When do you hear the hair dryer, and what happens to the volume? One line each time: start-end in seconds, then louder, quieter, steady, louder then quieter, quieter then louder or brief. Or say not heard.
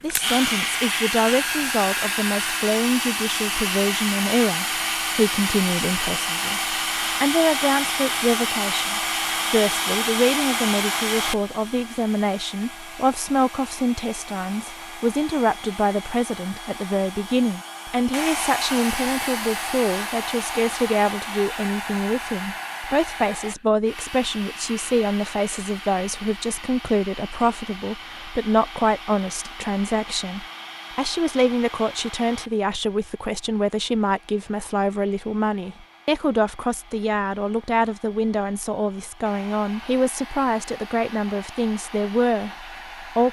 0.0-43.2 quieter.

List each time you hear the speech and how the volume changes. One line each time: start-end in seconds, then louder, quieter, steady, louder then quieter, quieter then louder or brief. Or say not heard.
0.0-43.2 steady.